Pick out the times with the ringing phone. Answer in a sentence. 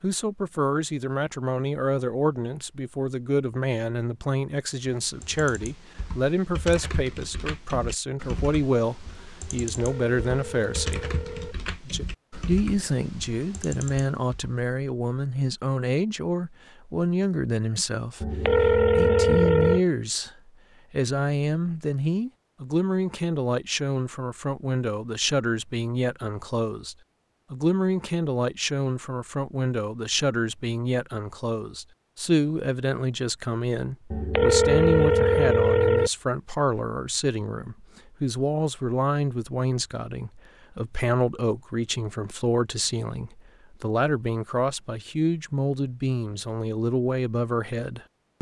The ringing phone can be heard from 9.8 to 11.6 s, from 18.2 to 19.8 s and from 34.1 to 36.1 s.